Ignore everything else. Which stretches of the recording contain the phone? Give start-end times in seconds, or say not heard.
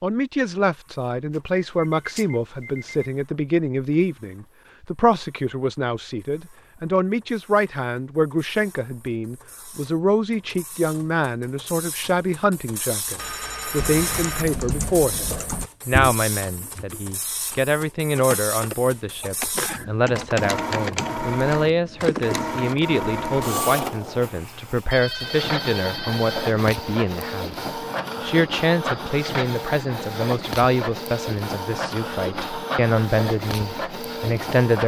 1.3-3.1, 13.2-14.4, 24.9-26.6.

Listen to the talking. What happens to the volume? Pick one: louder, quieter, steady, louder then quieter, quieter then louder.
steady.